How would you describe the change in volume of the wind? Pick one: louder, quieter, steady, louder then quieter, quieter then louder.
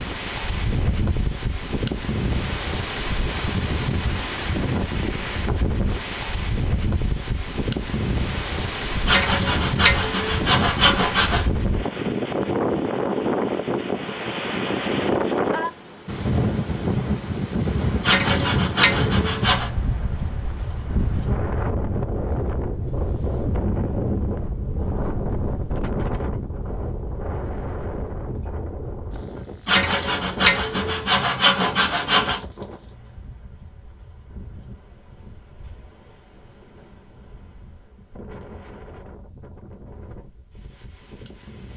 quieter.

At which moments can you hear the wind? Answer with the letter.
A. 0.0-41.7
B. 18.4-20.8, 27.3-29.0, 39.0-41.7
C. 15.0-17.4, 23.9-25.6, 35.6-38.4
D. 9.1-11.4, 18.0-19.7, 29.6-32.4
A.